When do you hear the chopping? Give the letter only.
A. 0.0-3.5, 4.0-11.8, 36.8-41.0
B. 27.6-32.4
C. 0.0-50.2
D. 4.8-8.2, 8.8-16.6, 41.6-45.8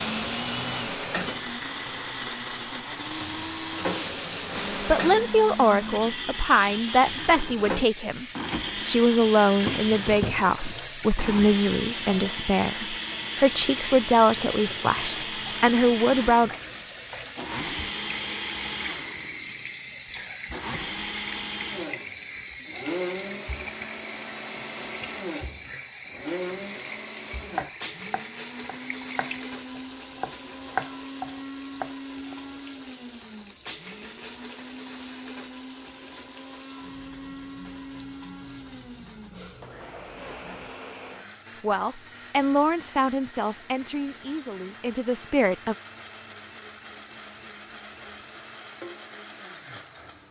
B.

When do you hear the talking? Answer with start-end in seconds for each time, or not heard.
4.8-8.2, 8.8-16.6, 41.6-45.8.